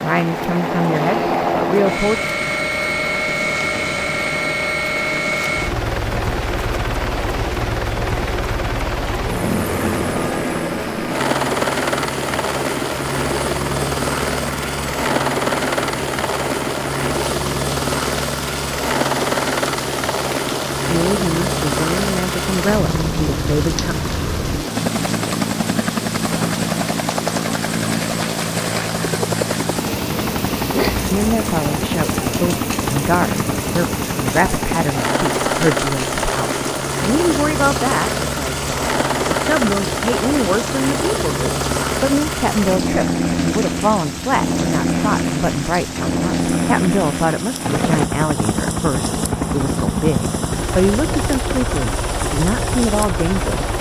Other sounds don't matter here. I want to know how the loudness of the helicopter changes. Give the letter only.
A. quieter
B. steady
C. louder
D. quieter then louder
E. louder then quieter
B.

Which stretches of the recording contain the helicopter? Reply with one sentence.
You can hear the helicopter from 0.1 to 53.7 s.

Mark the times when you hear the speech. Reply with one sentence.
You can hear the speech from 0.0 to 2.2 s, from 20.9 to 23.9 s and from 31.1 to 53.7 s.